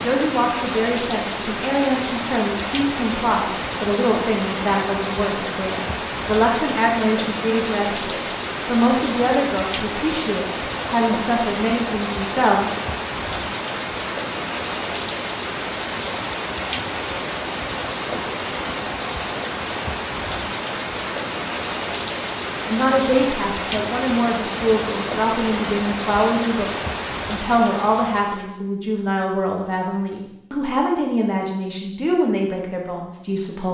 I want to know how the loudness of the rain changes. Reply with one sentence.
The loudness of the rain stays about the same.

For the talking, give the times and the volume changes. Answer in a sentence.
You can hear the talking from 0.0 to 12.7 s, at a steady volume; and from 22.6 to 33.6 s, at a steady volume.